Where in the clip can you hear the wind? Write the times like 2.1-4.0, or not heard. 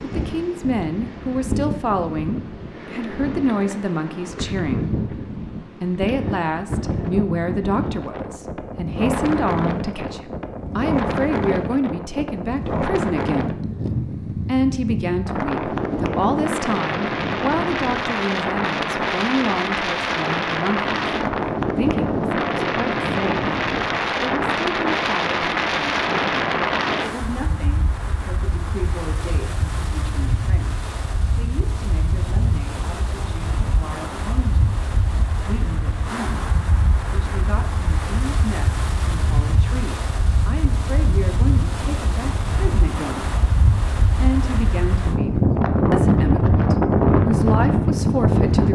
0.0-48.7.